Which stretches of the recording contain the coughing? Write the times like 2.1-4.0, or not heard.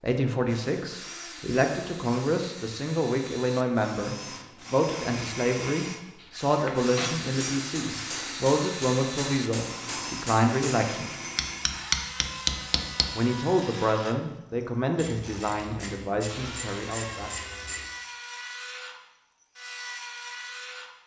not heard.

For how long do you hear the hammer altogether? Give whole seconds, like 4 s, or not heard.
7 s.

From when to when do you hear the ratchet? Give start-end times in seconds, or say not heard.
14.9-17.9.